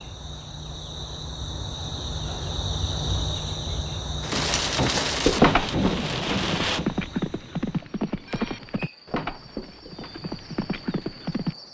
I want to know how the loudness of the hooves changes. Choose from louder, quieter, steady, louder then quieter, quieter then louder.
quieter.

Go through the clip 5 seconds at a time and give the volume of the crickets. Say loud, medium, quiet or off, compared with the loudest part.
loud, medium, quiet.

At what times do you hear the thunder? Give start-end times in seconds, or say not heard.
4.3-6.9.